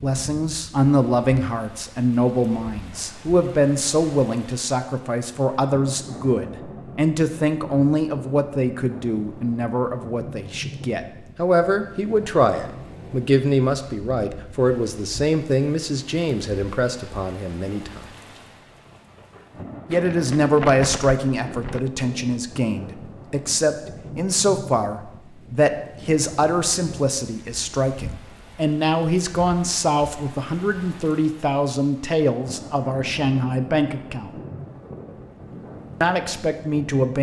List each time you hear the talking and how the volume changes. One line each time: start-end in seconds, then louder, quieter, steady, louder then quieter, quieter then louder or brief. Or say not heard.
0.0-18.1 steady
19.9-34.3 steady
36.0-37.1 brief.